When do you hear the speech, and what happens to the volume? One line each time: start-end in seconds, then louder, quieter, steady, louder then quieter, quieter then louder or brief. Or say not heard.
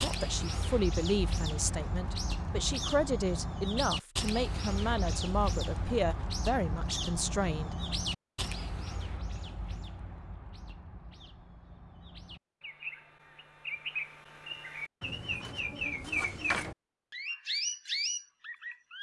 0.0-7.8 steady.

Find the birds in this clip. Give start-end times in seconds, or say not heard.
0.0-18.9.